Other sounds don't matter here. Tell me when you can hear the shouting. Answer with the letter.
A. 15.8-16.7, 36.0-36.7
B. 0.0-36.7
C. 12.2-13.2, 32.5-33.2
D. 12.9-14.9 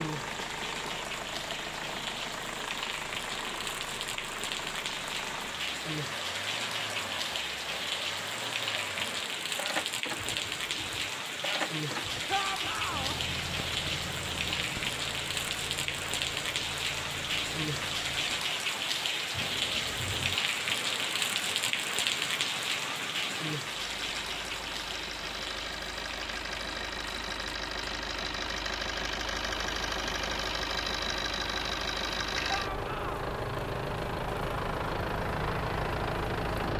C.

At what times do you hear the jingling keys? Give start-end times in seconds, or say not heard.
12.9-14.9.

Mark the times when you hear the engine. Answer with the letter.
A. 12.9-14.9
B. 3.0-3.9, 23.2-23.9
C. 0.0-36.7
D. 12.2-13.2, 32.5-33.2
C.